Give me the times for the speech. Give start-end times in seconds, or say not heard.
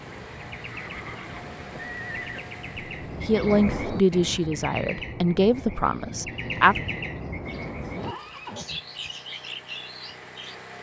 3.2-6.8.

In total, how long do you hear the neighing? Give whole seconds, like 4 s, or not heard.
3 s.